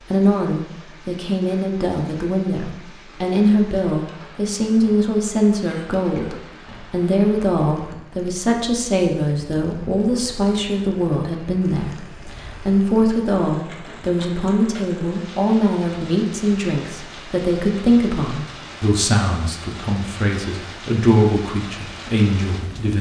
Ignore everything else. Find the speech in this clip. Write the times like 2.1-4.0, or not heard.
0.1-22.9.